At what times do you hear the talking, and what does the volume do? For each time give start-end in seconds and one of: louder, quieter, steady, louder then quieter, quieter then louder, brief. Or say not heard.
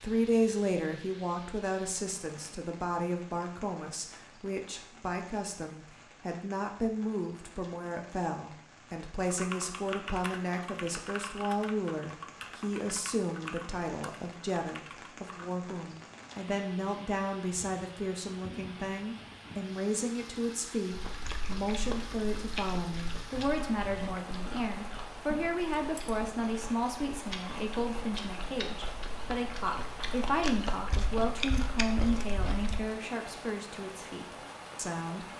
0.0-35.2 steady.